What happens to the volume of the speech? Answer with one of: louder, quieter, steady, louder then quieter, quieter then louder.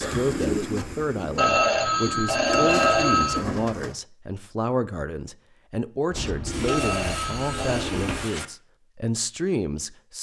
steady.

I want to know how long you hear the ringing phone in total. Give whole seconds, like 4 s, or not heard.
3 s.